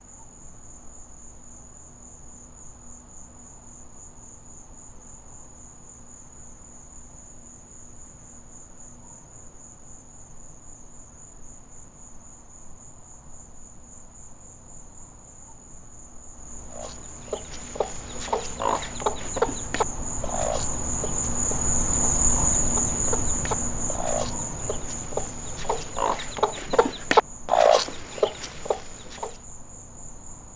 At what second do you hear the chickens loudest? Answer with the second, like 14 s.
28 s.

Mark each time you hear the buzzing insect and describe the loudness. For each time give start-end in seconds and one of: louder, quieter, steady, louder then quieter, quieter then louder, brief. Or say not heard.
0.0-30.5 louder then quieter.